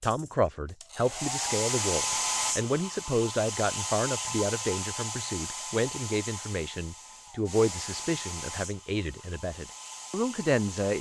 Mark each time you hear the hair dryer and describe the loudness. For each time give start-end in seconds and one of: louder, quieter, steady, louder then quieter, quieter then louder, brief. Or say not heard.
0.0-10.9 quieter.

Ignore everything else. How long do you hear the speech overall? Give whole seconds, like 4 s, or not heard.
11 s.